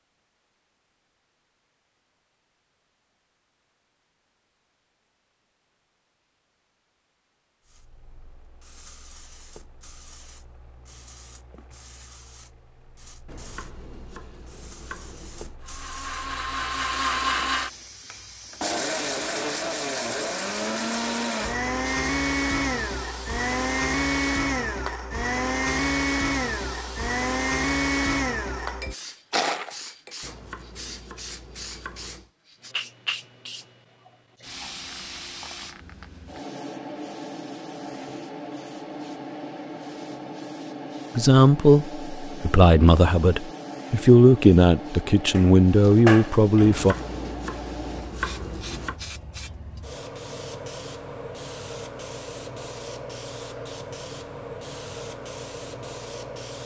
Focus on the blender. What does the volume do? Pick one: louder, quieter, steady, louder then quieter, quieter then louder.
steady.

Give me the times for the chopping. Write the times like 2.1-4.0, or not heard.
13.2-15.6, 30.2-32.3, 46.6-49.0.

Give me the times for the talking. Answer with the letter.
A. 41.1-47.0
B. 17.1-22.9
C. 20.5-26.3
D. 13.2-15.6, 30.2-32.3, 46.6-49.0
A.